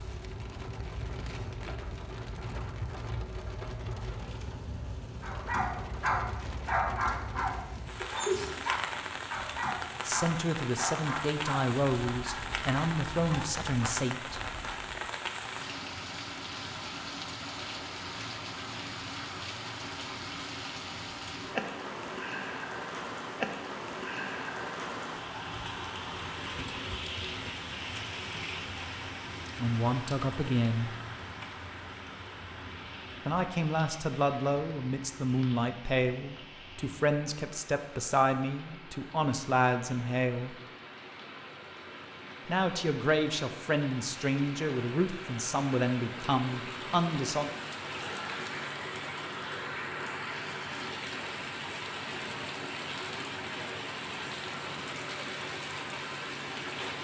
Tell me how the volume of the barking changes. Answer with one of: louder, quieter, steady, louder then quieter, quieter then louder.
quieter.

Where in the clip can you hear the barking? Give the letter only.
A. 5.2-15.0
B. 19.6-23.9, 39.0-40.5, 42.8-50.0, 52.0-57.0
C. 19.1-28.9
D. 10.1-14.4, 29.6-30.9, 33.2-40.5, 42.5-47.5
A.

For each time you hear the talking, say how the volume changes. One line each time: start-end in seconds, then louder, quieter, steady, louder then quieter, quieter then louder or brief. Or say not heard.
10.1-14.4 steady
29.6-30.9 brief
33.2-40.5 steady
42.5-47.5 steady.